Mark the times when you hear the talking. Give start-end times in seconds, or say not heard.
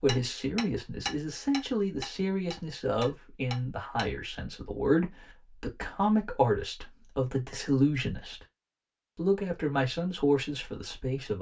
0.0-8.4, 9.2-11.3.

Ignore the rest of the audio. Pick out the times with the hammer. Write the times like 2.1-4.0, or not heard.
0.1-4.0.